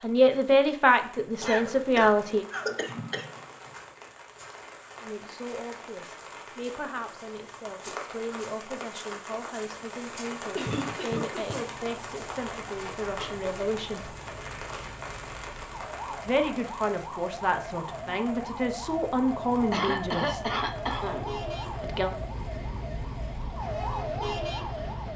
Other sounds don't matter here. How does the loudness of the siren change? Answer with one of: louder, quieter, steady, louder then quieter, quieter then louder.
louder.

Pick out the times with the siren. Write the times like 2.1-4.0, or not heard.
11.6-25.1.